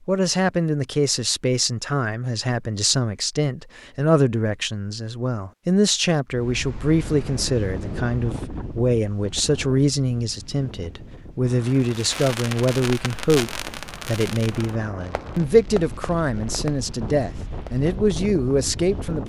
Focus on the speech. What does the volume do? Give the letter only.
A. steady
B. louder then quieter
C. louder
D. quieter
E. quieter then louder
A.